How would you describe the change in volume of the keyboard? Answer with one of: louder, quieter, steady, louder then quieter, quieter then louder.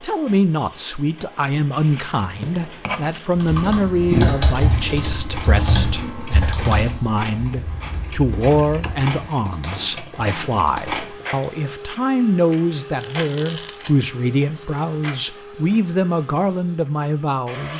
quieter.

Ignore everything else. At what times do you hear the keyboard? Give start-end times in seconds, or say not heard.
3.4-11.5.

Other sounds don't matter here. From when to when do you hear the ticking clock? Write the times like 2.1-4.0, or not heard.
not heard.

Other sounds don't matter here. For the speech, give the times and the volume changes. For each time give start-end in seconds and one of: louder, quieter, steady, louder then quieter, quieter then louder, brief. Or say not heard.
0.0-17.7 steady.